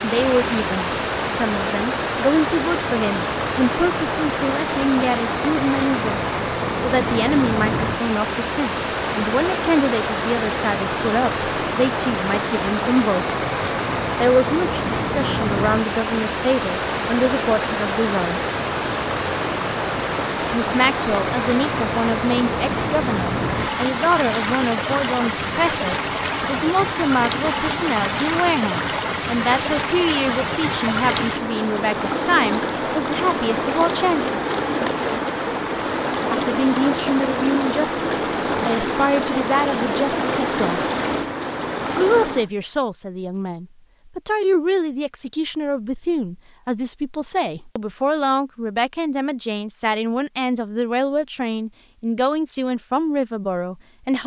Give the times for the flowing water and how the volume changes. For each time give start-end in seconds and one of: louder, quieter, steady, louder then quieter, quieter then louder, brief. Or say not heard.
0.0-42.5 steady.